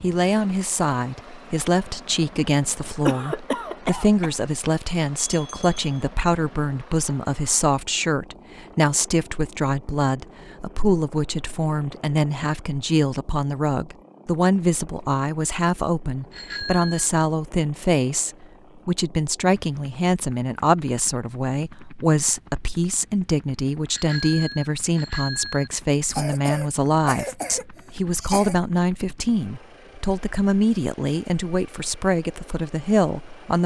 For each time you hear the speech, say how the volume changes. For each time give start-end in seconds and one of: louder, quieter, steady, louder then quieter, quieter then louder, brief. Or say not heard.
0.0-33.6 steady.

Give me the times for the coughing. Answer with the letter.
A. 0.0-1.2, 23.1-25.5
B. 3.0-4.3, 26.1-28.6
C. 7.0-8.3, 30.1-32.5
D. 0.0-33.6
B.